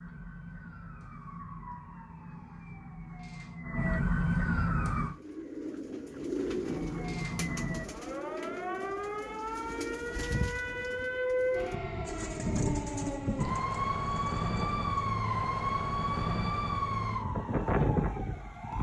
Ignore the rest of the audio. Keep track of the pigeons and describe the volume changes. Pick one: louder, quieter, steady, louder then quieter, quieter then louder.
quieter.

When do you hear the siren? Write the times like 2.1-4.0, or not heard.
0.0-5.2, 6.6-18.7.